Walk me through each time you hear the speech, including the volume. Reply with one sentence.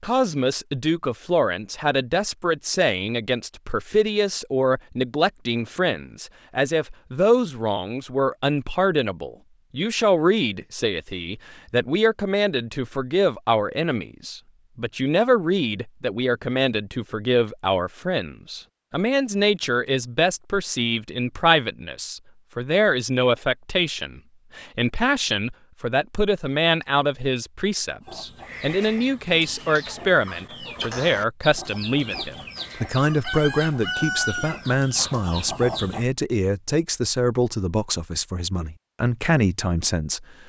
The speech can be heard from 0.0 to 40.2 s, at a steady volume.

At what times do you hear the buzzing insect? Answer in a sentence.
The buzzing insect can't be heard in this clip.